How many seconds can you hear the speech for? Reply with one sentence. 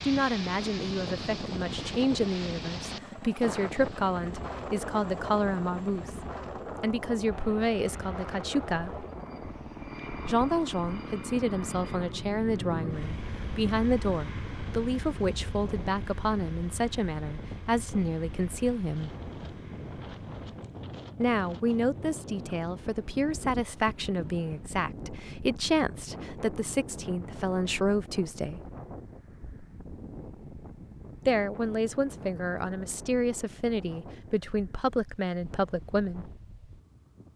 You can hear the speech for 30 seconds altogether.